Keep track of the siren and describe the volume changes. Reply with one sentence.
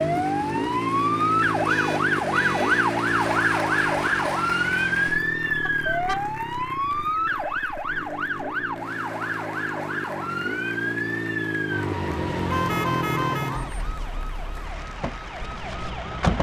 The loudness of the siren goes down.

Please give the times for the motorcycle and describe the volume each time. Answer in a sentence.
The motorcycle can be heard from 0.0 to 13.7 s, getting quieter then louder.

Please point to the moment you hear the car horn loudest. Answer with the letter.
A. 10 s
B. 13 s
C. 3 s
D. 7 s
B.